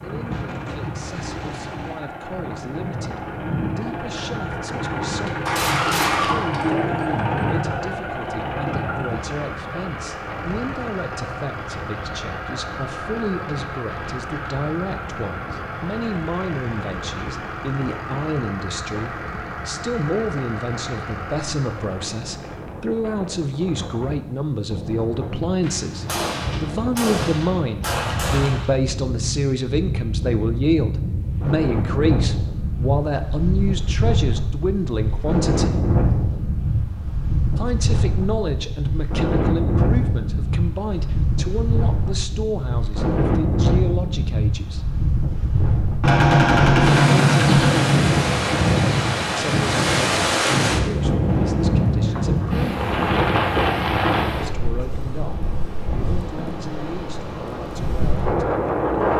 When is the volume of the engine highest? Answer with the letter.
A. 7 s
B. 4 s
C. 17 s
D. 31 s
A.